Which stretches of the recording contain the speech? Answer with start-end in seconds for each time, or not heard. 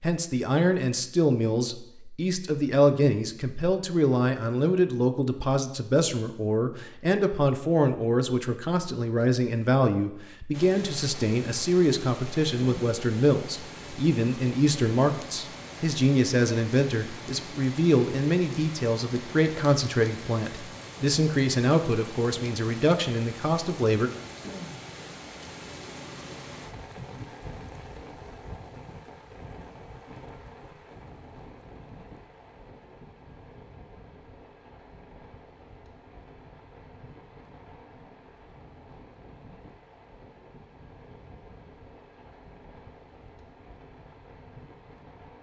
0.0-24.1.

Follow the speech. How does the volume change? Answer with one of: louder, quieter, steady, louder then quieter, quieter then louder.
steady.